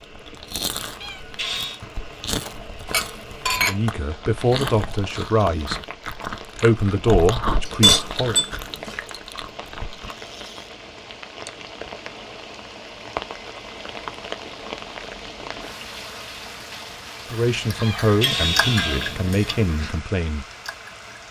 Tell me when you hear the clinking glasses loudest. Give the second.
8 s.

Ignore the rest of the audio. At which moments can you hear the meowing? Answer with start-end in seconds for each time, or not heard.
0.8-1.8, 17.6-19.3.